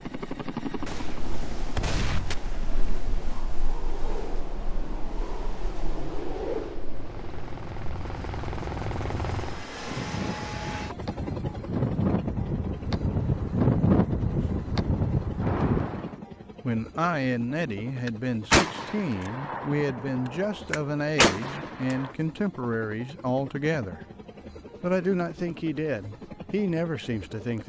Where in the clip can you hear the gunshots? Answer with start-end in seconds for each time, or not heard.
0.8-2.4, 18.1-22.1.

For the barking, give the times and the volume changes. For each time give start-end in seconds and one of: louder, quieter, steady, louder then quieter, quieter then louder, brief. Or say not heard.
not heard.